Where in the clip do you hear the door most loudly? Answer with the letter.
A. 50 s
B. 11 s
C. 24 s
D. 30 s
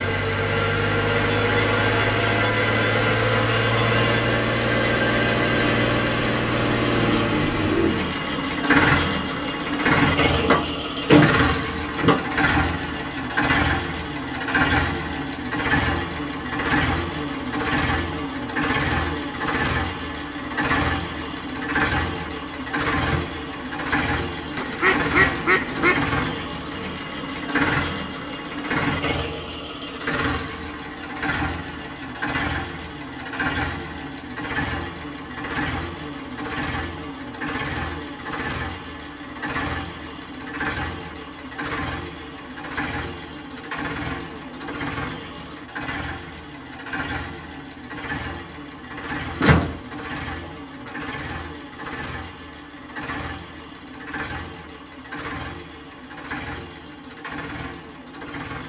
B.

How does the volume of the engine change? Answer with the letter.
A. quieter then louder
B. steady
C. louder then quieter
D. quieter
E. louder
D.